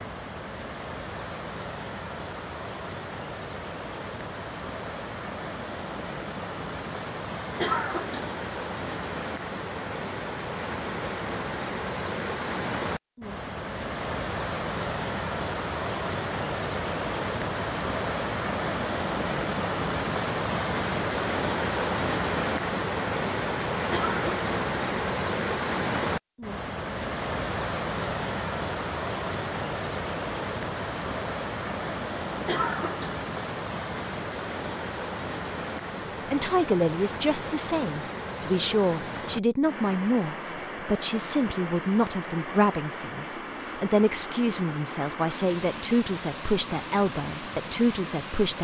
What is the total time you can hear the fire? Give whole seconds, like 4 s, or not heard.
not heard.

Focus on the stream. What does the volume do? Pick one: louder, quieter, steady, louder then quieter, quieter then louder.
louder then quieter.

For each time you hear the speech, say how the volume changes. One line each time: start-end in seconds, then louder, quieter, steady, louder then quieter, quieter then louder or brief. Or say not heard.
36.3-48.6 steady.